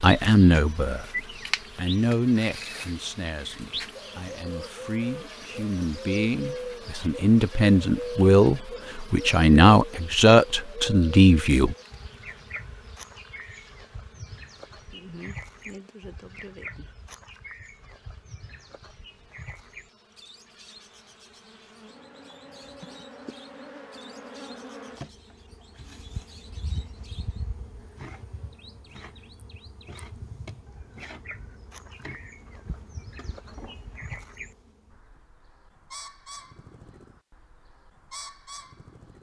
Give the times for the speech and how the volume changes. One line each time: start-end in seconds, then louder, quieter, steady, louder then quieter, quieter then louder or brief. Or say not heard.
0.0-11.8 quieter then louder.